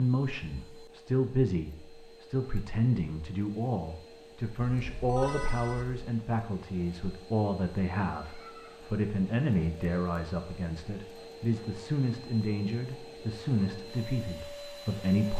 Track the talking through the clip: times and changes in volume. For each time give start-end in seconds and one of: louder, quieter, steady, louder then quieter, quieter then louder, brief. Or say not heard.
0.0-15.3 steady.